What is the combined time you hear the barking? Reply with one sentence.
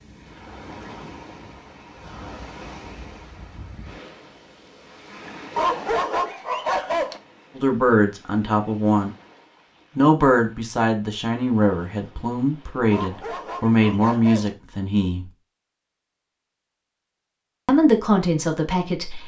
The barking can be heard for 3 seconds in total.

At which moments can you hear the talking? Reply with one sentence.
You can hear the talking from 7.5 to 9.1 s, from 9.9 to 15.3 s and from 17.6 to 19.2 s.